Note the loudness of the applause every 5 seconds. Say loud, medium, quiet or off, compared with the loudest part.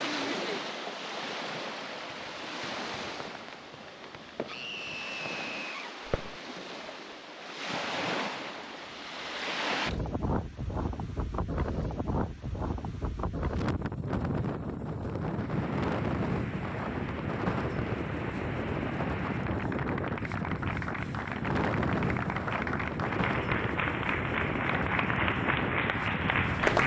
off, off, off, quiet, medium, loud.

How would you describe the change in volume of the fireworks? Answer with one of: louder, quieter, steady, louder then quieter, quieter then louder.
louder.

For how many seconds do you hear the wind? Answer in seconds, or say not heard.
27 s.